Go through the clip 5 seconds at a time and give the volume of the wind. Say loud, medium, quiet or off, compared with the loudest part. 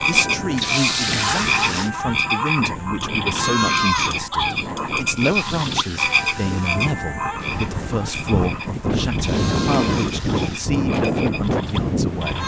medium, loud, loud.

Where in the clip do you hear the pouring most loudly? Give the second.
1 s.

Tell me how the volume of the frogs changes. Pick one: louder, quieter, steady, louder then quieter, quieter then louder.
quieter.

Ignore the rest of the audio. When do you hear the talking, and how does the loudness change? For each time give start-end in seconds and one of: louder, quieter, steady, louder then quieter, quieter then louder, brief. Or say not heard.
0.0-12.4 steady.